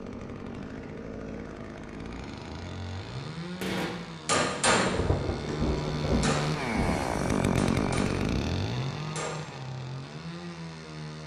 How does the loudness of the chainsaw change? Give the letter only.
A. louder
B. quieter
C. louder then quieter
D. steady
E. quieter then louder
C.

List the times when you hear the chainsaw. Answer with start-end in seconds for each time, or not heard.
0.0-11.2.